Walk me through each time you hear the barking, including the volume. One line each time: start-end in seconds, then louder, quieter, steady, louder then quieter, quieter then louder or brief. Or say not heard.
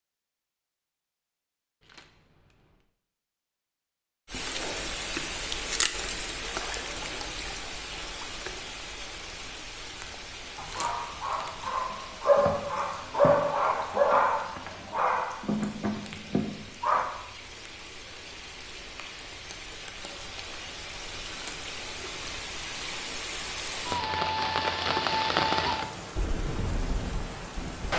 10.6-17.1 louder then quieter.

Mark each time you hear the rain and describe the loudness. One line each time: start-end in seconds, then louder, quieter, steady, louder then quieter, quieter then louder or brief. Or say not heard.
4.2-27.9 quieter then louder.